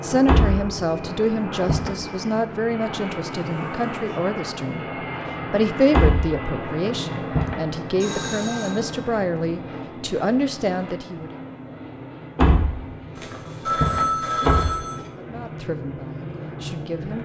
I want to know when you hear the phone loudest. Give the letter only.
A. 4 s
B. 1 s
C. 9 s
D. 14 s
D.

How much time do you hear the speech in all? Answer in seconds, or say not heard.
13 s.